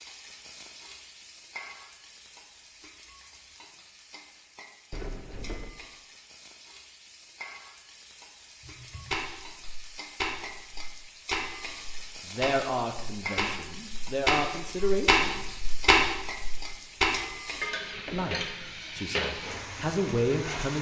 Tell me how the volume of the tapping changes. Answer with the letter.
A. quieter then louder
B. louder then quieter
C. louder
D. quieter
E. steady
C.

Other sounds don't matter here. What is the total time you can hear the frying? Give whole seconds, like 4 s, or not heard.
21 s.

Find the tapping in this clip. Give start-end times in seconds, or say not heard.
8.6-17.1.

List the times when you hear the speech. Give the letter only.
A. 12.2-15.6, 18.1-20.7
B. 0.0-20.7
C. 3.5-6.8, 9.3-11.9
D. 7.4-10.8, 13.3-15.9
A.